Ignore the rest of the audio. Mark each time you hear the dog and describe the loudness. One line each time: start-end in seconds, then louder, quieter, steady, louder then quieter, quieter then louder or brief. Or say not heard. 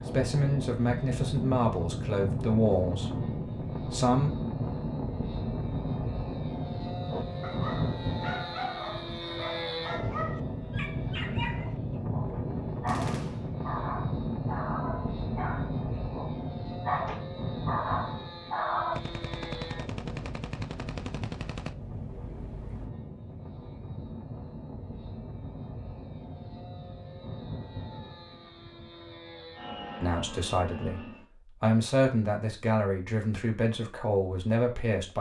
7.0-19.0 louder.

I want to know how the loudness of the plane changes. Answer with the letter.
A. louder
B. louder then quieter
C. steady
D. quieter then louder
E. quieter
E.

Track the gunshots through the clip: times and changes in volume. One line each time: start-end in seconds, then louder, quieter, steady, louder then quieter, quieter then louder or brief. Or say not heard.
12.8-13.6 brief
18.9-22.9 quieter.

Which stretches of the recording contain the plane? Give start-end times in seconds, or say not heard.
0.0-31.2.